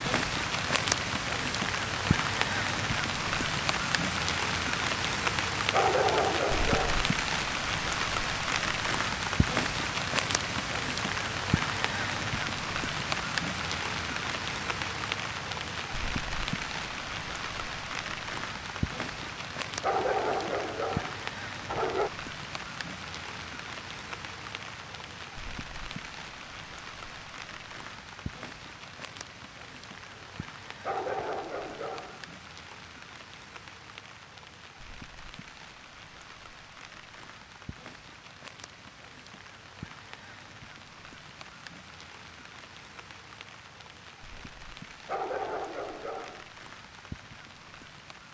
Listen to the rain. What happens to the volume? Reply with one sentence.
The loudness of the rain goes down.